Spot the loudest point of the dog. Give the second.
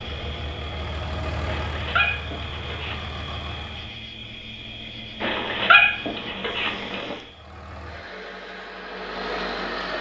6 s.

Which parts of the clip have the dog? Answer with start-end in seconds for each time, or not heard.
1.4-3.0, 5.2-7.2.